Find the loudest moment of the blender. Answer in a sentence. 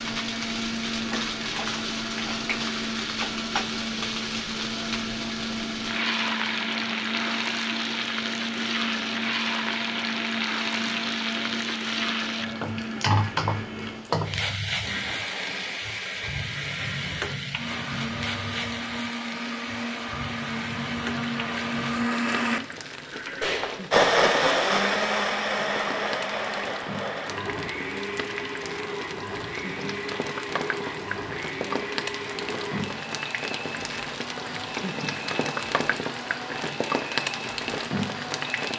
The loudest moment of the blender is at 24 seconds.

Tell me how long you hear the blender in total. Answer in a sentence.
You can hear the blender for 39 seconds altogether.